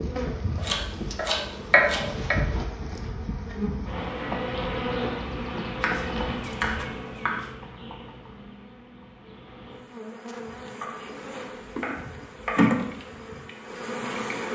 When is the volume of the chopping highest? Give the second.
2 s.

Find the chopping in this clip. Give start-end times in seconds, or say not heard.
0.6-2.4, 5.8-7.5, 10.8-12.8.